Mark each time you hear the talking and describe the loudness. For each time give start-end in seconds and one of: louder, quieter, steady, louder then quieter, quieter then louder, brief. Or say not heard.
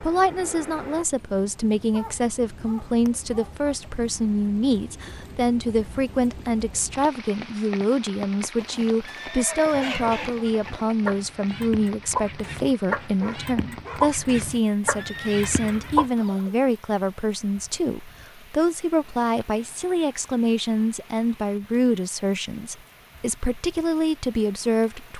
0.0-25.1 steady.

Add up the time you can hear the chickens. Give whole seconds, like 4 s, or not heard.
7 s.